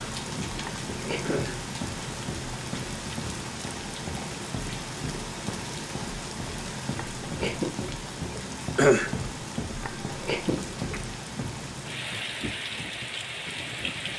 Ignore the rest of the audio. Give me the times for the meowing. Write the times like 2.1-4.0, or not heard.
0.6-1.4, 7.0-7.8, 9.8-10.6.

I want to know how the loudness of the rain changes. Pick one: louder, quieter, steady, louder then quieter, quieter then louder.
steady.